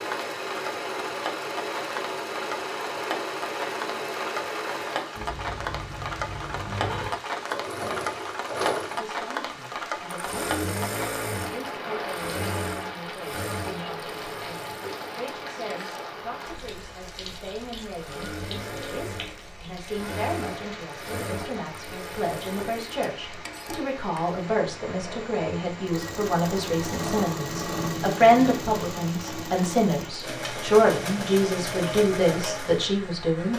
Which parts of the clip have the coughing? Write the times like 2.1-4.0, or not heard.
not heard.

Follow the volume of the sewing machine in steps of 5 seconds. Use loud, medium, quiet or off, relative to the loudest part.
loud, loud, loud, medium, medium, loud, loud.